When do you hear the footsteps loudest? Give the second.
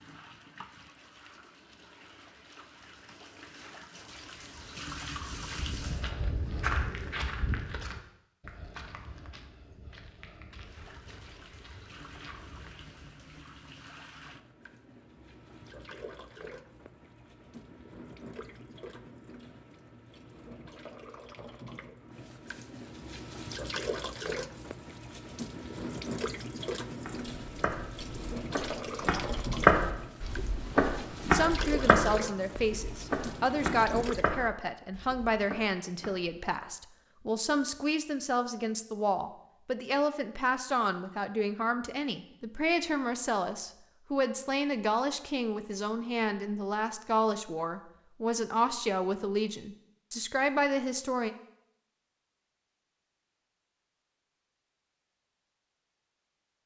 30 s.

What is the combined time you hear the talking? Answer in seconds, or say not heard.
20 s.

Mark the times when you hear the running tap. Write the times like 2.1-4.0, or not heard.
0.0-6.1, 10.6-34.4.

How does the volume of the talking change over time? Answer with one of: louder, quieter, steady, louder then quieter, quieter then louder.
steady.